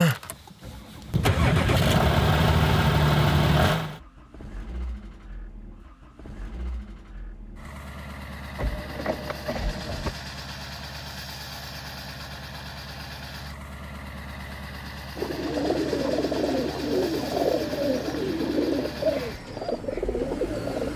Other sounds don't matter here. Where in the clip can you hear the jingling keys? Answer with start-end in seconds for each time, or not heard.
8.6-10.2.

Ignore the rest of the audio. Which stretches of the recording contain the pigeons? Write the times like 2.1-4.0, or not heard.
15.2-20.9.